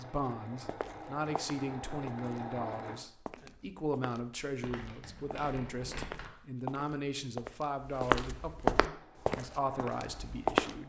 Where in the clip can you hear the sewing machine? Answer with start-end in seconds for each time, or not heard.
0.0-3.0, 8.8-10.8.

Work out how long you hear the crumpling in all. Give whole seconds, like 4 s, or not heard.
2 s.